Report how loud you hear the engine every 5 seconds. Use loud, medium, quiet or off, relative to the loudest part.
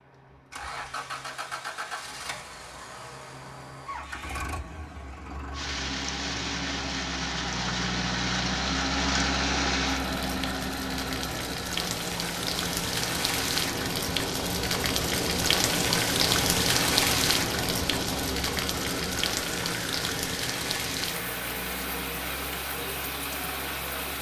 medium, loud, loud, medium, medium.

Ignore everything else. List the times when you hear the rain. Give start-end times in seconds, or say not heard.
5.5-24.1.